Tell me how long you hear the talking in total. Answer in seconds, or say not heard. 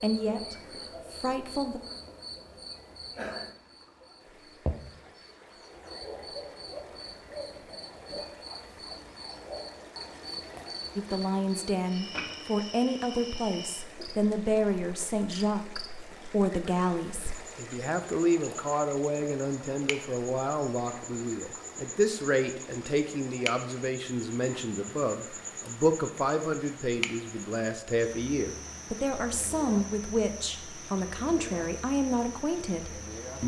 24 s.